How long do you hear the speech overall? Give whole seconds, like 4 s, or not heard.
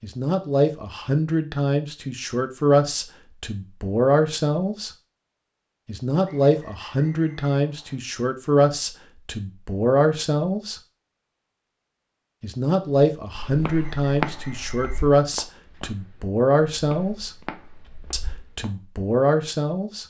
17 s.